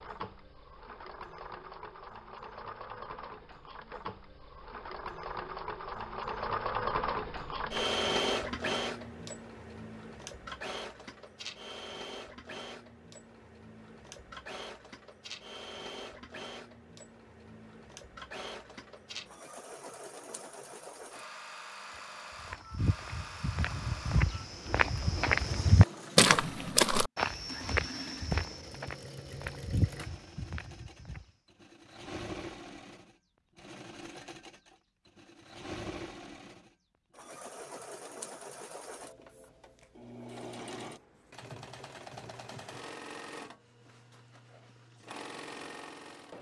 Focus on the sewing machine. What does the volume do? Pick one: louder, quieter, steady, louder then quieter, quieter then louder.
quieter.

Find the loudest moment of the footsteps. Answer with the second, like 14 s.
26 s.